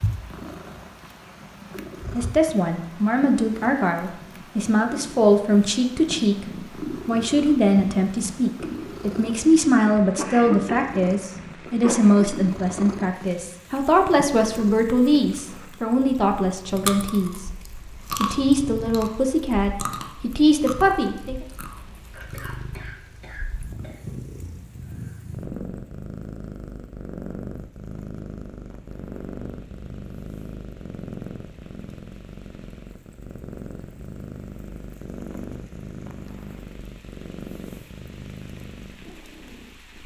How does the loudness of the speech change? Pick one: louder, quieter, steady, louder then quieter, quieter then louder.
steady.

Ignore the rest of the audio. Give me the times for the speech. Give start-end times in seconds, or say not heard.
2.1-6.5, 7.0-17.5, 18.2-21.4.